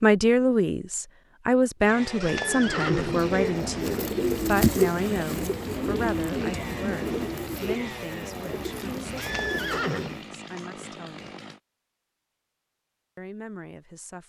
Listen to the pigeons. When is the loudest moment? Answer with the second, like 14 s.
5 s.